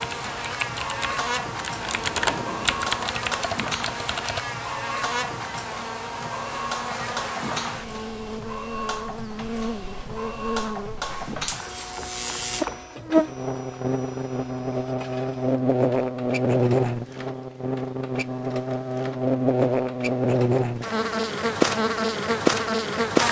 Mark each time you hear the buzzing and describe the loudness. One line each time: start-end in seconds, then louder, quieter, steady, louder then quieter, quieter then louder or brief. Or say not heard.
0.0-23.2 louder.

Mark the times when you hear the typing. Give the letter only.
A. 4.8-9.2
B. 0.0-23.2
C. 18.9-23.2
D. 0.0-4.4
D.